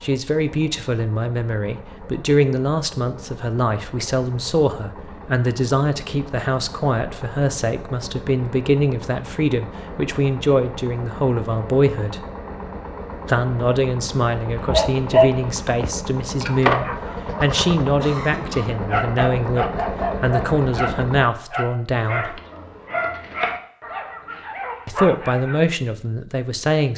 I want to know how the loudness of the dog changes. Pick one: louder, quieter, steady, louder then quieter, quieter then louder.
quieter.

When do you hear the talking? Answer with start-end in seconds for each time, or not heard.
0.0-12.2, 13.2-22.4, 24.9-26.9.